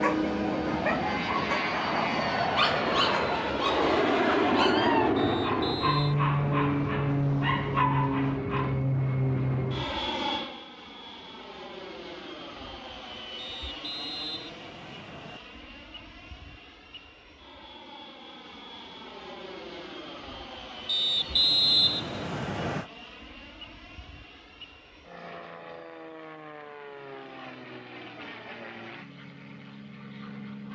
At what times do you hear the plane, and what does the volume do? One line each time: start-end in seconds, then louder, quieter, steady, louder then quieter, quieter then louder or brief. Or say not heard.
0.0-30.7 quieter.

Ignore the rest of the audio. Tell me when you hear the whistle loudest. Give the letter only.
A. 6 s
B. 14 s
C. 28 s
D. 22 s
D.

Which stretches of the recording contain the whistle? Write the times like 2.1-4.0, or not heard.
5.2-6.2, 13.3-15.4, 20.9-22.9.